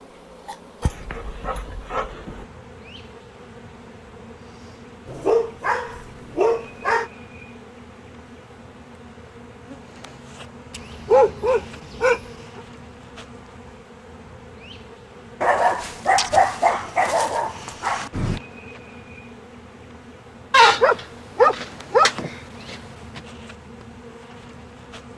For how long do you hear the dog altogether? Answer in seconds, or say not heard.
11 s.